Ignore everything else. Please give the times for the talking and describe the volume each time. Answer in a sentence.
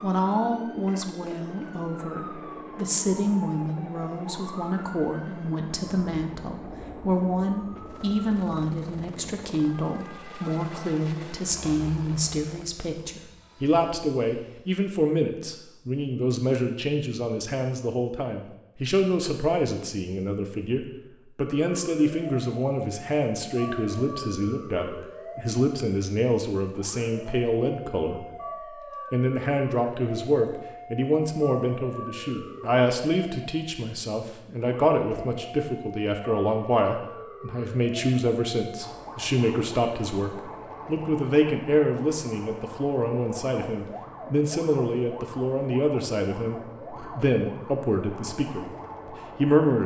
You can hear the talking from 0.0 to 49.8 s, at a steady volume.